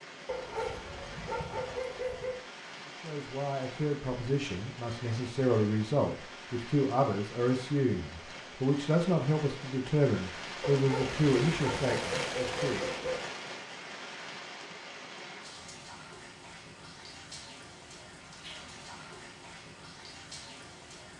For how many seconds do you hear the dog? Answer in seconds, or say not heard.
5 s.